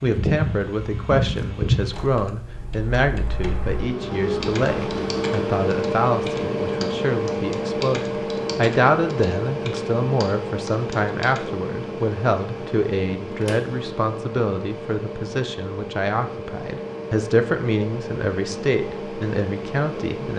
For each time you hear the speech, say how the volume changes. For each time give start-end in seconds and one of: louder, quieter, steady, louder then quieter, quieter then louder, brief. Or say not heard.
0.0-20.3 steady.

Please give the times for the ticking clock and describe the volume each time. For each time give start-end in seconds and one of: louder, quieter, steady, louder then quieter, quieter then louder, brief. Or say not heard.
not heard.